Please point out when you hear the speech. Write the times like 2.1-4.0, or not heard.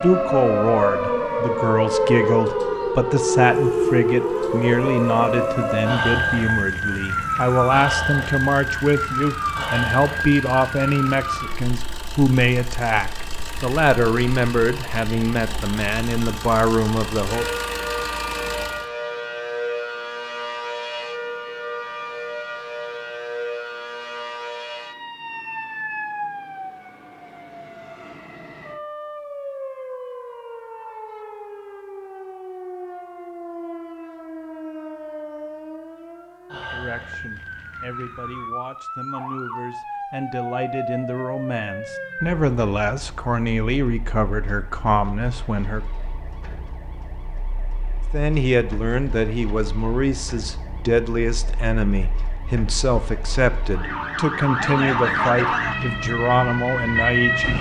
0.0-17.4, 36.7-45.8, 48.1-57.5.